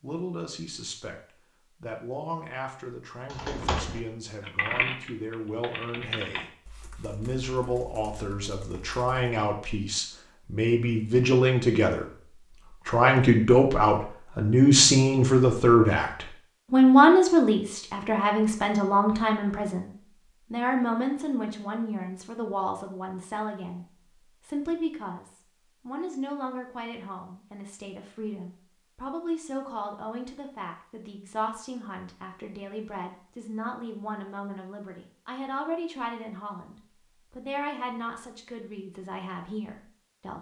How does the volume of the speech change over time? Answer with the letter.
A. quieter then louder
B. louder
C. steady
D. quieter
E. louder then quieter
E.